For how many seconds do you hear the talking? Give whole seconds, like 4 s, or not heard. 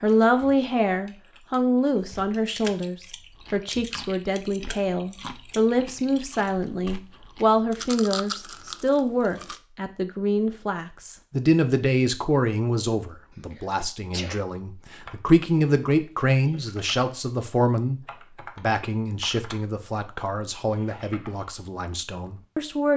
23 s.